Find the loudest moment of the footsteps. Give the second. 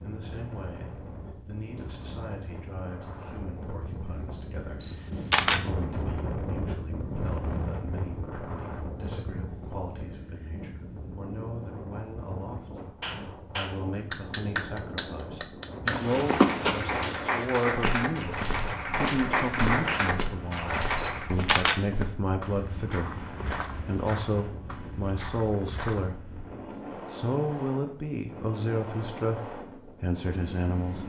17 s.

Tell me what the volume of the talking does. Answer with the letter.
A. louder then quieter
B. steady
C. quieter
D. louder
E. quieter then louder
D.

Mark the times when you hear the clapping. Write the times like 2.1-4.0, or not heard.
13.0-21.4.